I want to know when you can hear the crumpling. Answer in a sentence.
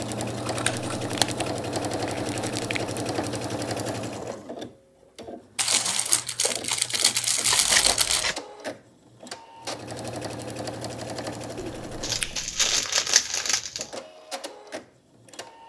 You can hear the crumpling from 0.9 to 3.0 s, from 5.5 to 8.3 s and from 12.0 to 13.9 s.